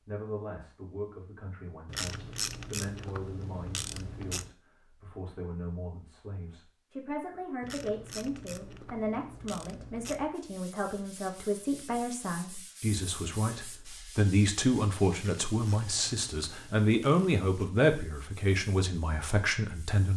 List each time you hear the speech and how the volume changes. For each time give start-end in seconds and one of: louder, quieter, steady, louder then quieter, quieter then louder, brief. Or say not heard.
0.0-20.1 louder.